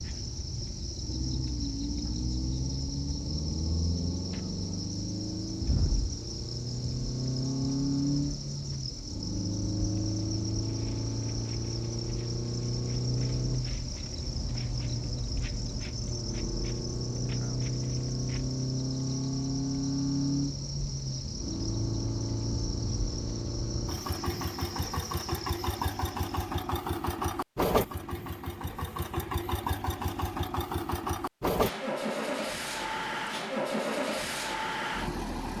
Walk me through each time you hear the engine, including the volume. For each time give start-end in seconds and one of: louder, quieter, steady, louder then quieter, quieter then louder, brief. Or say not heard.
0.0-35.5 steady.